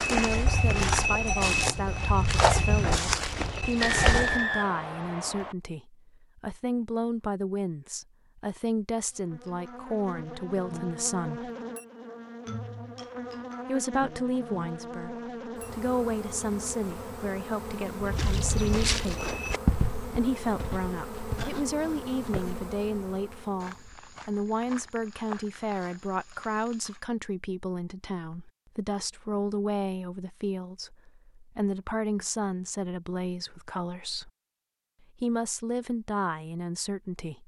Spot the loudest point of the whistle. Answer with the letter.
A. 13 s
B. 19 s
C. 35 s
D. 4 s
D.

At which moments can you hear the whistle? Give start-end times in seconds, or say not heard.
3.8-5.5.